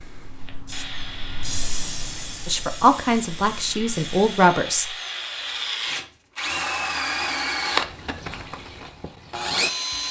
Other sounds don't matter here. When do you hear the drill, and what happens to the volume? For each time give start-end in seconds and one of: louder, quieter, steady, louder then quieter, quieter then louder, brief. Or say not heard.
0.0-10.0 louder.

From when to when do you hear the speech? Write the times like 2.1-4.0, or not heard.
2.5-5.0.